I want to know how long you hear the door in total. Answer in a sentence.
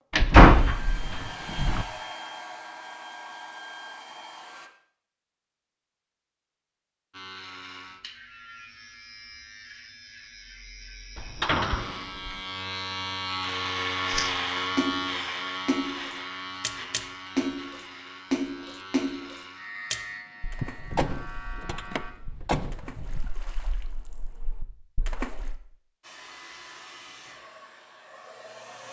The door can be heard for 6 seconds in total.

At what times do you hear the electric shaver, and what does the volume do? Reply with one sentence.
The electric shaver can be heard from 7.1 to 22.1 s, getting louder then quieter.